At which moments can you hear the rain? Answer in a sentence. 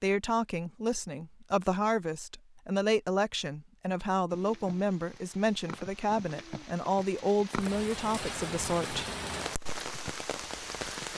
You can hear the rain from 4.3 to 11.1 s.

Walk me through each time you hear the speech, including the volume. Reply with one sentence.
You can hear the speech from 0.0 to 9.1 s, at a steady volume.